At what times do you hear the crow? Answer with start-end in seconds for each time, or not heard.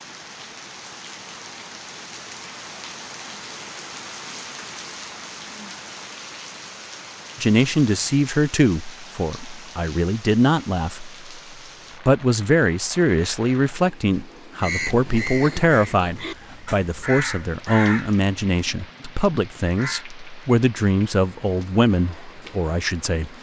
14.6-20.1.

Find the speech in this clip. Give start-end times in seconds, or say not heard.
7.4-11.2, 12.1-23.3.